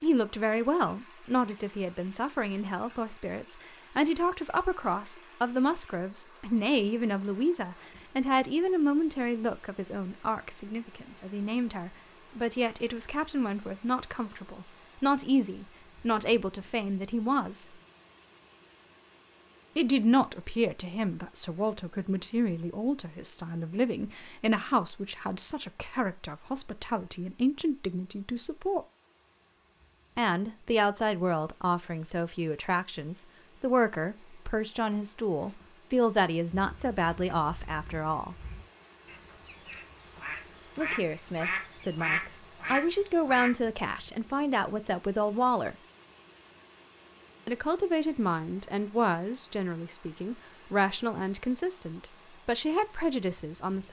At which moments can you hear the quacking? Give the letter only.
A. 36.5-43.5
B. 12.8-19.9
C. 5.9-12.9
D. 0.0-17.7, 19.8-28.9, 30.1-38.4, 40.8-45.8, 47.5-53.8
A.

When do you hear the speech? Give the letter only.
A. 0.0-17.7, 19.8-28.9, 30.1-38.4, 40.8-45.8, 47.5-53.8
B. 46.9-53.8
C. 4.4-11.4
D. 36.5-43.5
A.